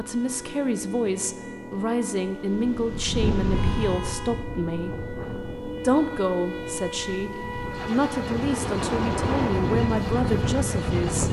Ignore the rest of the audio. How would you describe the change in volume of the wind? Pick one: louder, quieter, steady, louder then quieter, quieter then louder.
quieter then louder.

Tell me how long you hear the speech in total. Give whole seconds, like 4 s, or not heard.
10 s.